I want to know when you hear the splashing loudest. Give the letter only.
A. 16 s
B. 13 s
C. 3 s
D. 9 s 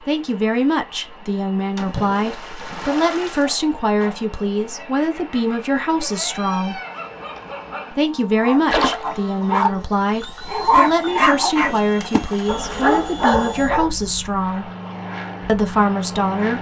D.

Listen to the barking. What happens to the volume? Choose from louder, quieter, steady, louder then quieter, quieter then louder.
louder.